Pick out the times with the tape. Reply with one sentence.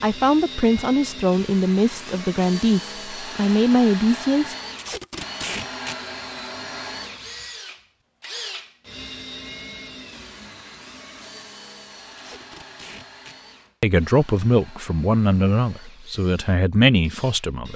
The tape can be heard from 4.8 to 6.0 s and from 12.1 to 13.3 s.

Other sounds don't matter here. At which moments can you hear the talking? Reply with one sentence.
The talking can be heard from 0.0 to 4.5 s and from 13.8 to 17.7 s.